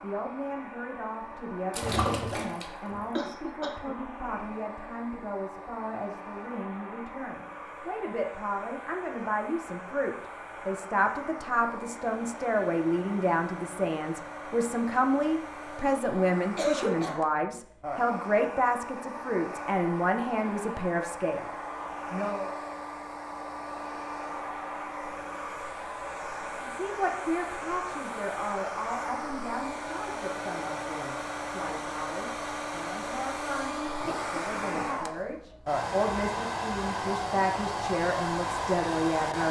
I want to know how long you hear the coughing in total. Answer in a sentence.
You can hear the coughing for 2 seconds altogether.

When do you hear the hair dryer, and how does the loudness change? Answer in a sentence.
The hair dryer can be heard from 0.0 to 39.4 s, getting louder.